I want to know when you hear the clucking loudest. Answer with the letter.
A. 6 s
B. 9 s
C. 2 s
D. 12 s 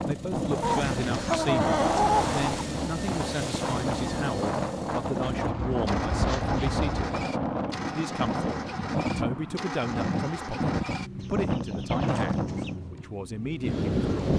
C.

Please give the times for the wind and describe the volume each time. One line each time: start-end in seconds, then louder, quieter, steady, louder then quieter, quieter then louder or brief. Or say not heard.
0.0-14.3 steady.